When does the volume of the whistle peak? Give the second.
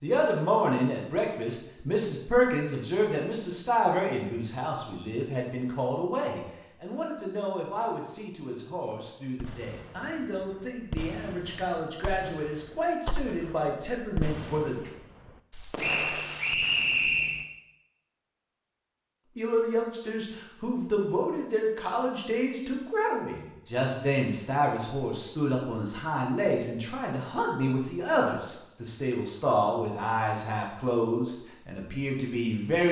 17 s.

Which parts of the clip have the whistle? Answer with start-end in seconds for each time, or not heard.
15.8-17.4.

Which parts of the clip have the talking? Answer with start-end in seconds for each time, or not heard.
0.0-14.9, 19.4-32.8.